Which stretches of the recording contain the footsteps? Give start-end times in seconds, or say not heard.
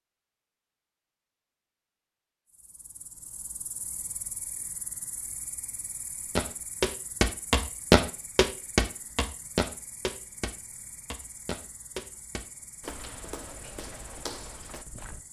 6.3-15.2.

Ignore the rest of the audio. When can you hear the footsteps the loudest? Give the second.
8 s.